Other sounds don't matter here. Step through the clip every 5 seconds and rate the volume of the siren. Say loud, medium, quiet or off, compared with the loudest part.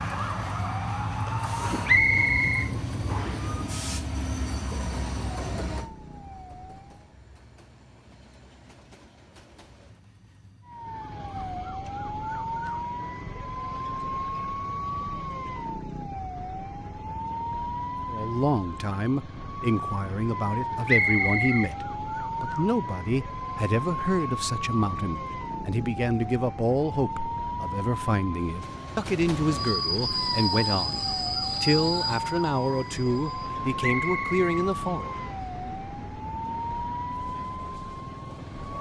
loud, quiet, loud, loud, loud, loud, loud, loud.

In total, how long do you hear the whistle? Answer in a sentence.
The whistle can be heard for 4 seconds in total.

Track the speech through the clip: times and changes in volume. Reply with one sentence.
The speech can be heard from 18.1 to 35.0 s, at a steady volume.